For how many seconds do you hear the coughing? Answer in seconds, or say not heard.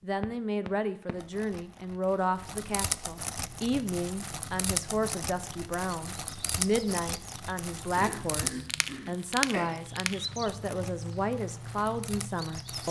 2 s.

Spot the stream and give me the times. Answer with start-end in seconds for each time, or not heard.
not heard.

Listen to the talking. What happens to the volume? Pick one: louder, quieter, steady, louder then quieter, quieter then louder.
steady.